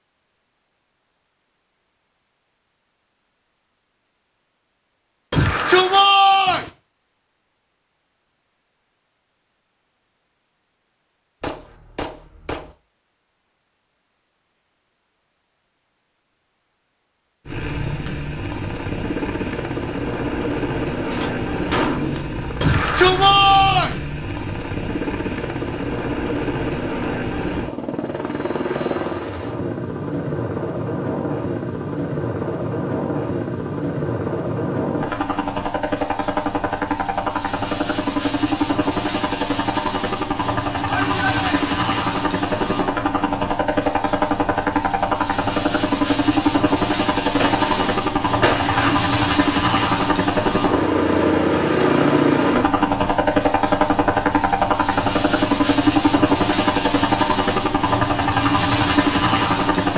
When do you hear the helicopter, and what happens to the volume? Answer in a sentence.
You can hear the helicopter from 17.4 to 59.9 s, getting louder.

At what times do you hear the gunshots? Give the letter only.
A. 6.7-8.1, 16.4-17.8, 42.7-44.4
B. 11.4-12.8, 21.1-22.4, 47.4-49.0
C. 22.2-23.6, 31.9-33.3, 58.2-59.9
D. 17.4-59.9
B.